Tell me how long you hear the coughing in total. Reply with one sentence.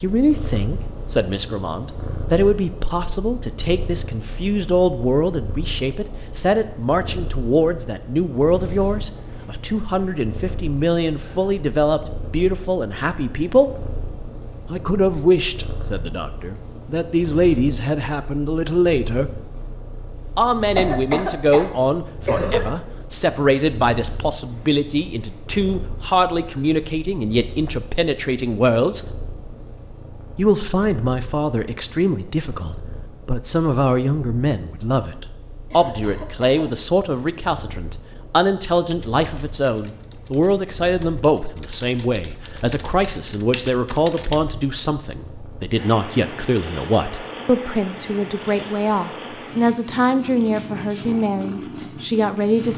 You can hear the coughing for 3 seconds altogether.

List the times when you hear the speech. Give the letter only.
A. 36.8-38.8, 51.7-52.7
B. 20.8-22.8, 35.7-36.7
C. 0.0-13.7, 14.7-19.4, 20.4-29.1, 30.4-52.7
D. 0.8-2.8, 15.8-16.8
C.